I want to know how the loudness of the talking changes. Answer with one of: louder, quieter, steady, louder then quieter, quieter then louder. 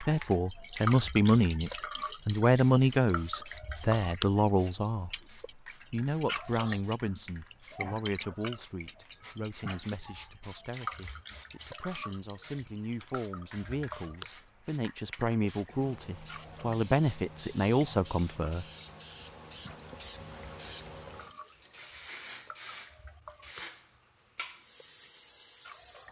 quieter then louder.